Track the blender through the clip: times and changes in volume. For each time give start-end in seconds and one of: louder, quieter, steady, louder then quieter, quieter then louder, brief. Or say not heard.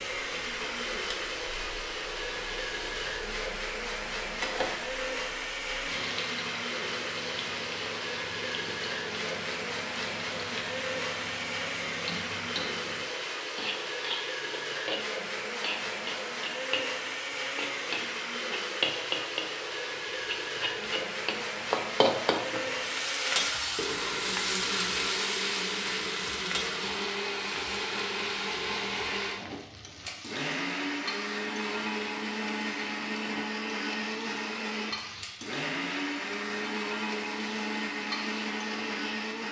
0.0-39.4 steady.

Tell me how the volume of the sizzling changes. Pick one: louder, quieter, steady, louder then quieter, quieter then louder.
louder then quieter.